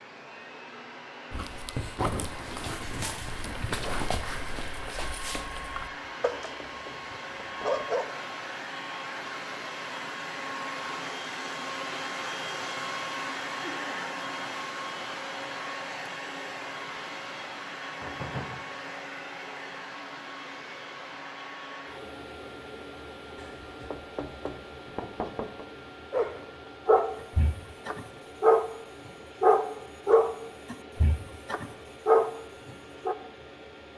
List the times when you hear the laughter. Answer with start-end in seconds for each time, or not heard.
13.6-14.1.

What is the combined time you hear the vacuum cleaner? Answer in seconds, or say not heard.
34 s.